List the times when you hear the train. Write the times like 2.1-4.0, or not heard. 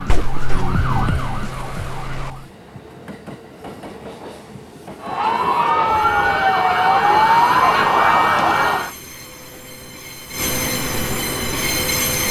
0.0-12.2.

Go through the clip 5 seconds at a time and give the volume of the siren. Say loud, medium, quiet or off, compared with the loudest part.
medium, loud, off.